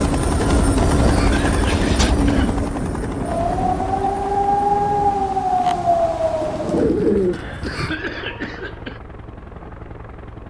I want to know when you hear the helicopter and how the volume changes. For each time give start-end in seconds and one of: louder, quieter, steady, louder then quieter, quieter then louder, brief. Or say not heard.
0.0-10.4 quieter.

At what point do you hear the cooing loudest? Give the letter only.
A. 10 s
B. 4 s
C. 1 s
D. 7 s
D.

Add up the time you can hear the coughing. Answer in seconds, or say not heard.
3 s.